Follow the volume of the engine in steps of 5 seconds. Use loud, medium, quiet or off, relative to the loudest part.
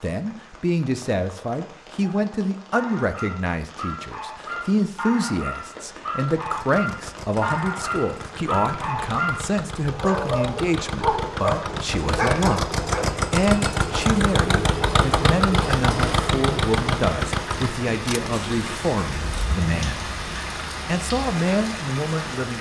off, quiet, loud, loud, quiet.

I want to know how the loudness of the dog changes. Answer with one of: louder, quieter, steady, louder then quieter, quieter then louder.
louder.